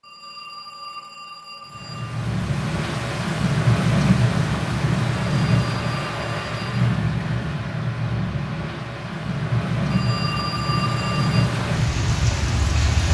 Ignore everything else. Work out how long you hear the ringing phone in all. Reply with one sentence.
The ringing phone can be heard for 5 seconds in total.